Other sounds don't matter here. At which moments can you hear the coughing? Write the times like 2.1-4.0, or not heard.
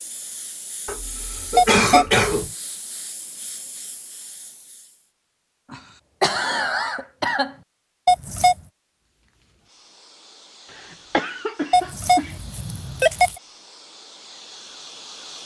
0.8-2.5, 5.7-7.5, 11.1-12.3.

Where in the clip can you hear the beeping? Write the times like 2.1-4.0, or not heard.
1.6-2.5, 8.1-8.6, 11.7-13.4.